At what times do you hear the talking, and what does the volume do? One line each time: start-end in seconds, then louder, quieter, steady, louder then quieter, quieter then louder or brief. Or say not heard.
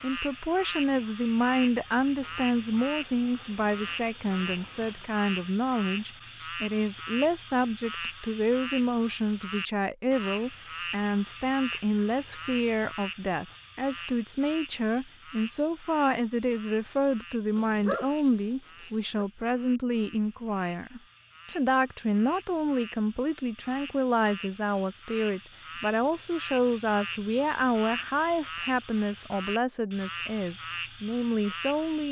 0.0-32.0 steady.